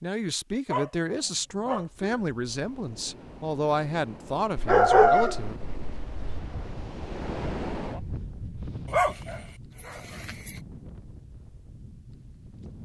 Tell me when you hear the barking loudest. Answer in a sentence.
The volume of the barking peaks at 5 seconds.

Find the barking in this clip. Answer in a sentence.
You can hear the barking from 0.7 to 2.2 s, from 4.5 to 6.4 s and from 8.8 to 10.6 s.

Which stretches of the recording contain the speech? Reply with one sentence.
The speech can be heard from 0.0 to 5.5 s.